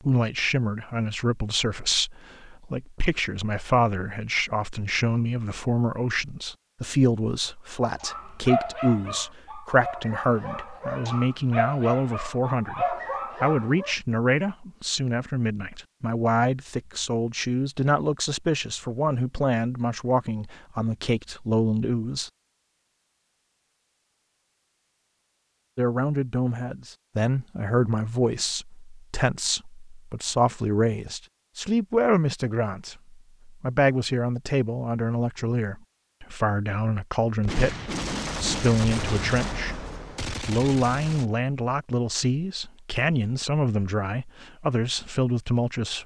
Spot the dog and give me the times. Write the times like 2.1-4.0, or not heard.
8.0-13.9.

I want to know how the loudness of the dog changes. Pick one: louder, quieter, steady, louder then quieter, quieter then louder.
quieter then louder.